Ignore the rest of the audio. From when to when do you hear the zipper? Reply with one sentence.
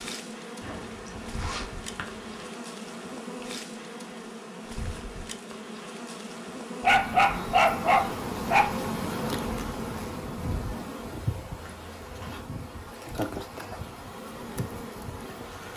The zipper can be heard from 0.6 to 2.5 s and from 11.6 to 12.4 s.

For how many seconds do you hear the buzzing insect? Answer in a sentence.
You can hear the buzzing insect for 16 seconds altogether.